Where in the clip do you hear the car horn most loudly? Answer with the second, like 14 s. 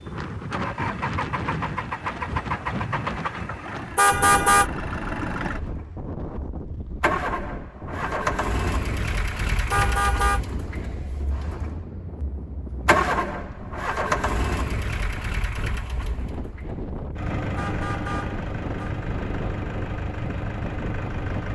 4 s.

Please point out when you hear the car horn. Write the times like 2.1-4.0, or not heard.
4.0-4.7, 9.7-10.4, 17.6-18.9.